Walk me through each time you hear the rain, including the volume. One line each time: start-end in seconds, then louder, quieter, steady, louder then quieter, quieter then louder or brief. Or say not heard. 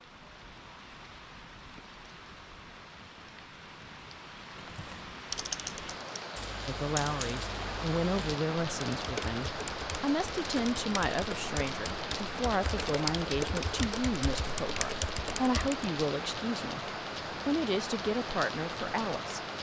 0.0-19.5 louder.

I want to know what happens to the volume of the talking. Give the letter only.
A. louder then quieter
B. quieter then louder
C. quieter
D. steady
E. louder
D.